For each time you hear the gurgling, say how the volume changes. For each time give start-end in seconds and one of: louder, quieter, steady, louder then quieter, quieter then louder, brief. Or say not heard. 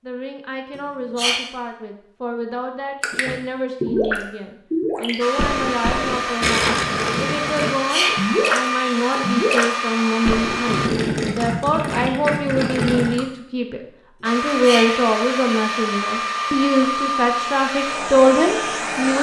3.0-13.2 steady.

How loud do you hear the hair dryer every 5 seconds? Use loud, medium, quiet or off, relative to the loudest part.
off, loud, loud, loud.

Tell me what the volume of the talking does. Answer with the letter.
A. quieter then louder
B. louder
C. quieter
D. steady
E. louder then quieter
B.